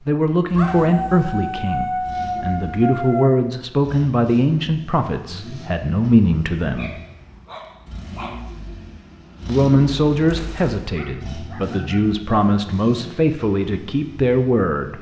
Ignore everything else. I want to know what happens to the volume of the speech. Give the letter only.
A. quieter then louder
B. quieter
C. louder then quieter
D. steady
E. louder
D.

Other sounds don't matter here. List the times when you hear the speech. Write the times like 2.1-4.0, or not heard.
0.1-6.9, 9.4-14.9.